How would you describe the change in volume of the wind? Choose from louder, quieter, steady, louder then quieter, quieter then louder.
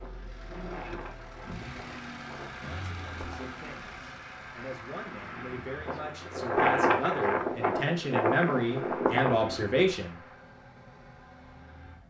louder.